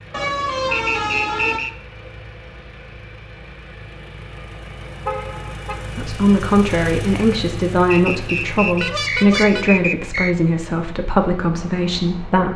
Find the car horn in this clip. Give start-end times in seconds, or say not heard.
0.1-1.6, 5.0-5.8, 8.8-9.7.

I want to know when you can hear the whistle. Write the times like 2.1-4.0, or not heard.
0.7-1.7, 7.9-10.3.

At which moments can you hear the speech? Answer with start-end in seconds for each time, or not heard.
6.0-12.5.